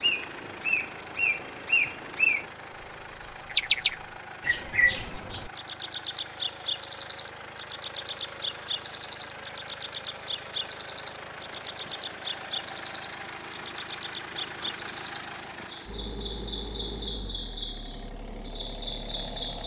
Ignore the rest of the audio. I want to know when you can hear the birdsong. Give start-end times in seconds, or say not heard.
0.0-19.6.